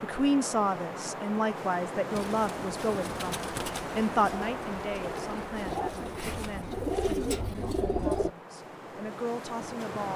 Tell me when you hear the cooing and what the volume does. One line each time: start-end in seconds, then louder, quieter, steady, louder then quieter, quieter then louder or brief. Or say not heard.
2.1-8.3 louder.